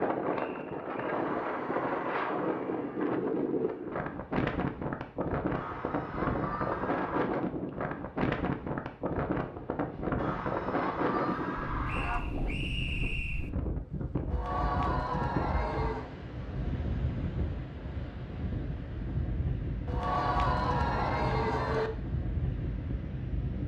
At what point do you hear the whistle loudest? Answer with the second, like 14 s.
13 s.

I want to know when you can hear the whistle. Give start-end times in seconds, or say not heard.
0.5-1.2, 11.8-13.5.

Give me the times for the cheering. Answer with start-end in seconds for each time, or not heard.
1.1-3.1, 5.5-7.3, 10.2-12.2, 14.3-16.1, 19.9-21.9.